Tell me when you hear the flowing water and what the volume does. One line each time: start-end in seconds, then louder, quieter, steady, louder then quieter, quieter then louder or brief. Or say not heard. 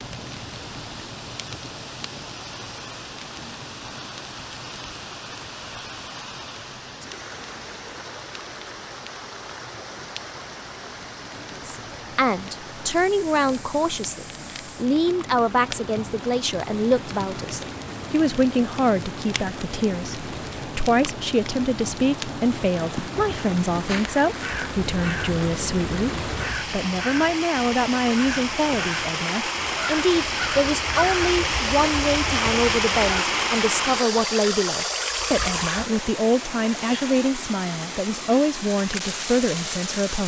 0.0-40.2 louder.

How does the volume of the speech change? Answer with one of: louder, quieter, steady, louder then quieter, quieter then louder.
steady.